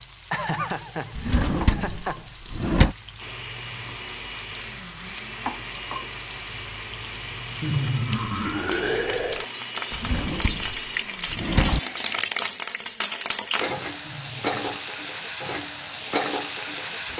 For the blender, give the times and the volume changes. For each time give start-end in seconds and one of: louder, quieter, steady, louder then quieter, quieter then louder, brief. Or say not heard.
3.1-12.2 steady.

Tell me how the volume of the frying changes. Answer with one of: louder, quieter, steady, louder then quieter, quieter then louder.
louder.